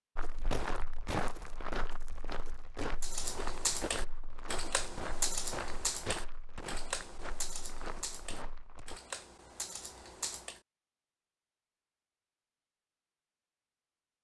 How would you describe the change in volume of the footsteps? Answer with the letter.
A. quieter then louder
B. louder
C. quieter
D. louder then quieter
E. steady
C.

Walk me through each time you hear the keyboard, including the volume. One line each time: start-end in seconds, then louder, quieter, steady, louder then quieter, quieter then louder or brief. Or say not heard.
3.0-10.6 quieter.